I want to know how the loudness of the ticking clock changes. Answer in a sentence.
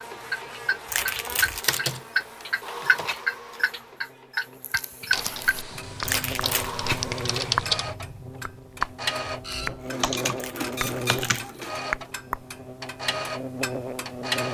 The volume of the ticking clock goes down.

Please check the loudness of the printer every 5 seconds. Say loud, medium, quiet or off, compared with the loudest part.
medium, loud, loud.